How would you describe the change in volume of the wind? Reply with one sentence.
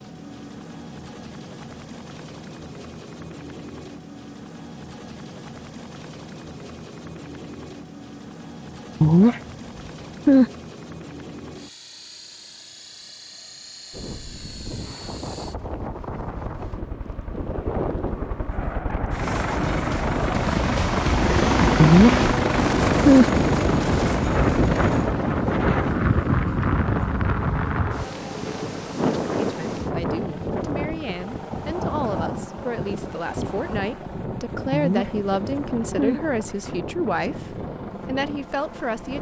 The loudness of the wind goes up, then down.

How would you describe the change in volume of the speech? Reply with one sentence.
The volume of the speech goes up.